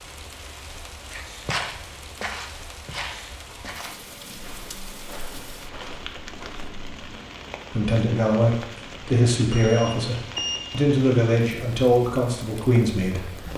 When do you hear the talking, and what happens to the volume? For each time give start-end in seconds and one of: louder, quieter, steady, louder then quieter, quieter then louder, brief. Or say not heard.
7.7-13.4 steady.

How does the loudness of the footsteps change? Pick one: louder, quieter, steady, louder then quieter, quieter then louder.
quieter.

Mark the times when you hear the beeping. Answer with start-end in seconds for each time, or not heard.
9.5-10.6.